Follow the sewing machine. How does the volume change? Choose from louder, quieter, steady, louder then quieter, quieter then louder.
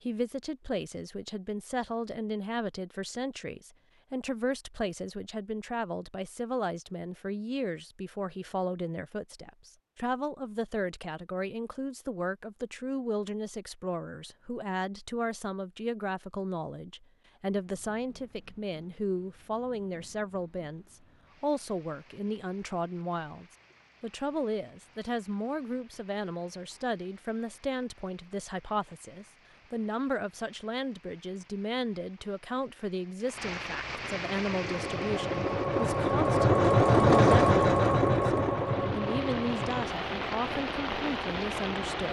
louder then quieter.